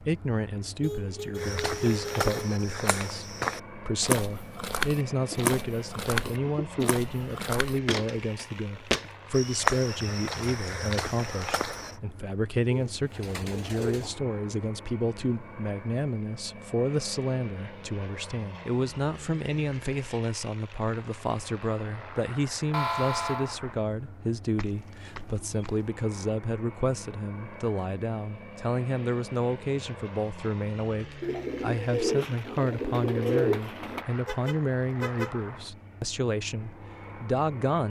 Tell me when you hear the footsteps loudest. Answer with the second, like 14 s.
10 s.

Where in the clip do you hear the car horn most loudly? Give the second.
23 s.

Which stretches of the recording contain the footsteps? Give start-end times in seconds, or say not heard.
1.4-11.9.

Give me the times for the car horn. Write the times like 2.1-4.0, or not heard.
0.8-2.3, 22.7-23.6, 34.2-35.3.